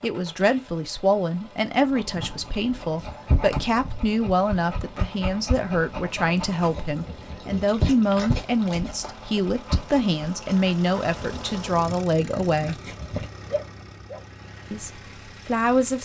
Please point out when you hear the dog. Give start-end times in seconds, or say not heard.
1.9-14.2.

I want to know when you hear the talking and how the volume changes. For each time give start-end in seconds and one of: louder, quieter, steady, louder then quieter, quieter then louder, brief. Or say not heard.
0.0-12.8 steady
14.7-16.0 brief.